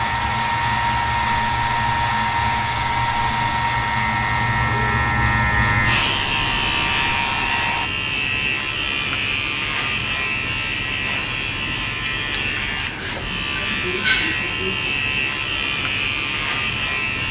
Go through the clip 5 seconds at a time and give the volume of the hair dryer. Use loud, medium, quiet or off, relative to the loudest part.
loud, medium, off, off.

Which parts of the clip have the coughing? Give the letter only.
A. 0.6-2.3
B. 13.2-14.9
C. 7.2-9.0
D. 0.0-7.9
B.